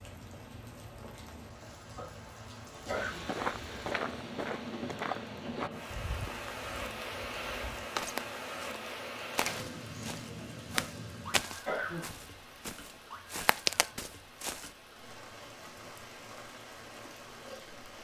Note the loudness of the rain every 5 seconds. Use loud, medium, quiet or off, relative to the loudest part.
medium, loud, medium, medium.